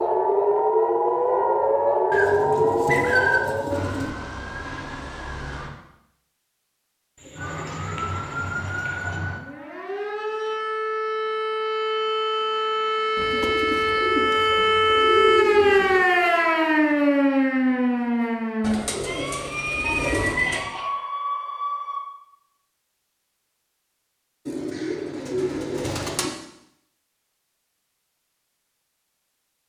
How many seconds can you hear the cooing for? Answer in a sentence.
The cooing can be heard for 11 seconds in total.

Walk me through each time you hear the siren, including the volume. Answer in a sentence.
The siren can be heard from 0.0 to 5.8 s, getting quieter; and from 7.3 to 22.1 s, getting louder then quieter.